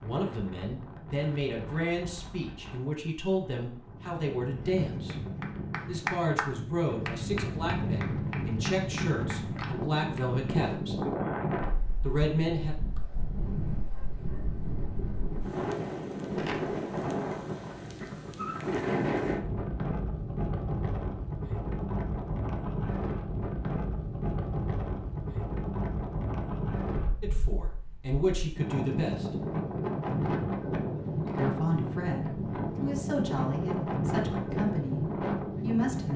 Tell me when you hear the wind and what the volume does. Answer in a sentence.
The wind can be heard from 0.0 to 36.1 s, getting louder.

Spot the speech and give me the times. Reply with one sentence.
The speech can be heard from 0.0 to 5.2 s, from 5.8 to 10.9 s, from 12.0 to 12.8 s, from 27.2 to 29.4 s and from 31.4 to 36.1 s.